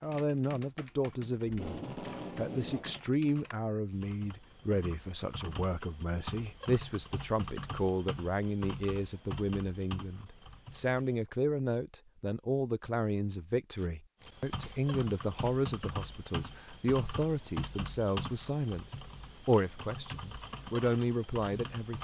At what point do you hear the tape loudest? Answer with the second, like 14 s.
2 s.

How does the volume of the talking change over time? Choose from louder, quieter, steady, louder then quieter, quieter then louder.
steady.